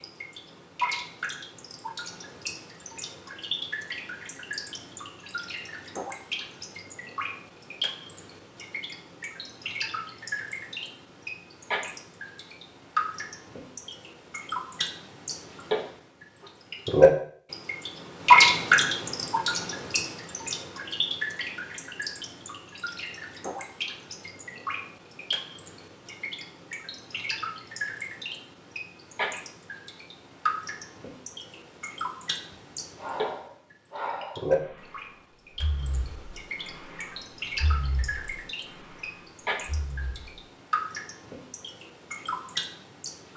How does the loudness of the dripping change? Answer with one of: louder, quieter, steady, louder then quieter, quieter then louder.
louder then quieter.